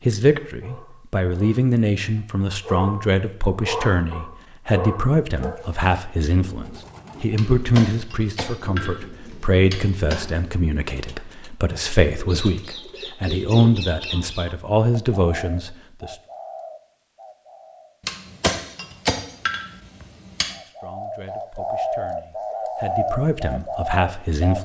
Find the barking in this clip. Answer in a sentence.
The barking can be heard from 0.6 to 5.5 s.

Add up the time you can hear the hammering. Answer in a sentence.
You can hear the hammering for 5 seconds altogether.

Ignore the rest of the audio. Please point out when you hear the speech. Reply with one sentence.
You can hear the speech from 0.1 to 16.1 s and from 20.4 to 24.6 s.